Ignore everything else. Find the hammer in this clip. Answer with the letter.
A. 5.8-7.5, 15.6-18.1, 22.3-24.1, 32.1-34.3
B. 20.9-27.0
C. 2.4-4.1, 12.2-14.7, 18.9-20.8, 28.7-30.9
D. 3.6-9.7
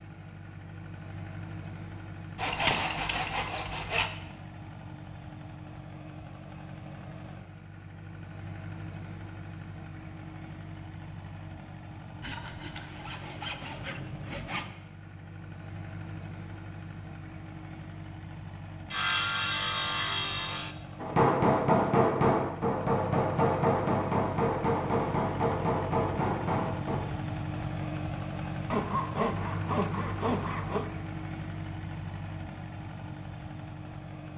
B.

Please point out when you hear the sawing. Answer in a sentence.
You can hear the sawing from 2.4 to 4.1 s, from 12.2 to 14.7 s, from 18.9 to 20.8 s and from 28.7 to 30.9 s.